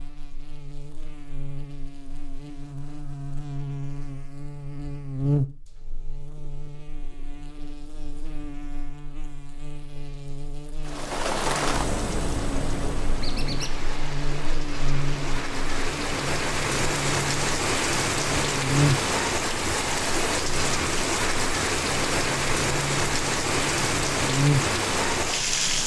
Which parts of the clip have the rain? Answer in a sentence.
The rain can be heard from 10.8 to 25.8 s.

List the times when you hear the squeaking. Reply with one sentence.
You can hear the squeaking from 13.2 to 13.8 s.